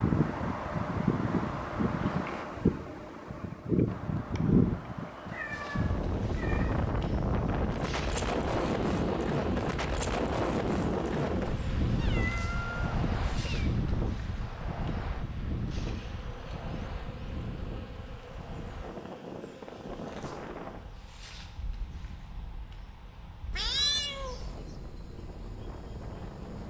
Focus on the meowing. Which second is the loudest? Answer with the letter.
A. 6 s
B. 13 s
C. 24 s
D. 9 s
C.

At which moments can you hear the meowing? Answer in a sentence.
You can hear the meowing from 5.2 to 6.9 s, from 11.8 to 13.8 s and from 23.6 to 24.5 s.